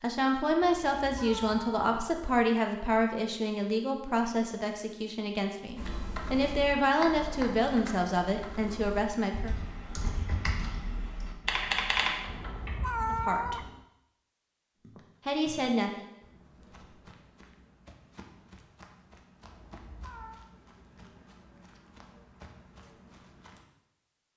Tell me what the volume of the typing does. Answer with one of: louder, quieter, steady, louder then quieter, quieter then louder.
quieter then louder.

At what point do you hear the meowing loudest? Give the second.
13 s.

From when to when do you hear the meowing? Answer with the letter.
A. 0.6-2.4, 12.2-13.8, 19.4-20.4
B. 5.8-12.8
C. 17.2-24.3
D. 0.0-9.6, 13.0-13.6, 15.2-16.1
A.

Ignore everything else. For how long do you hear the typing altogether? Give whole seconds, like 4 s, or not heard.
7 s.